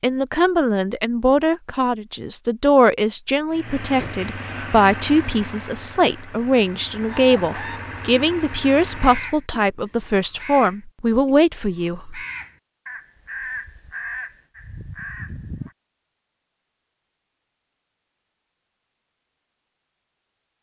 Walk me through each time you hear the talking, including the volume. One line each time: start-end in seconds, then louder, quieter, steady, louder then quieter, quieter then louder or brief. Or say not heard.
0.0-12.2 steady.